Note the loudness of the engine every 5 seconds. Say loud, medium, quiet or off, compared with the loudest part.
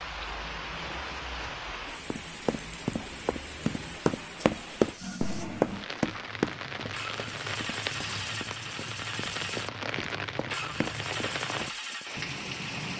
quiet, loud, loud.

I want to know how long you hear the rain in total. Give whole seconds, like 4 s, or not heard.
13 s.